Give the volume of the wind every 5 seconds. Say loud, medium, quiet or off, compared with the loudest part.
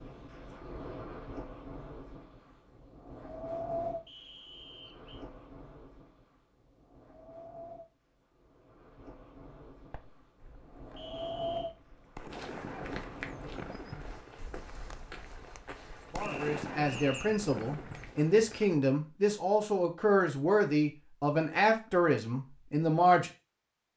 loud, medium, loud, off, off.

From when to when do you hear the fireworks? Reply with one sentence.
The fireworks can be heard from 9.7 to 18.1 s.